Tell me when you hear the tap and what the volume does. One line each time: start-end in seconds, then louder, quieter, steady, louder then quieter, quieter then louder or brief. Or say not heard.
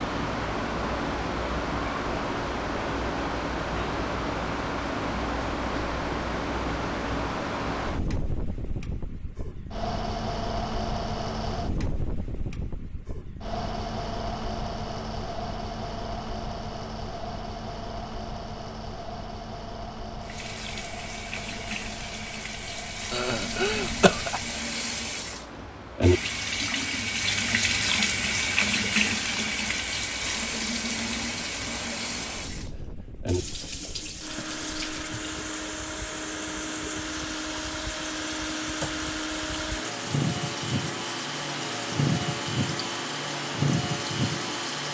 20.2-44.8 louder then quieter.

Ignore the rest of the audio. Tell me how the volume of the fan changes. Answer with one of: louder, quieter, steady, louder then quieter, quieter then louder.
quieter then louder.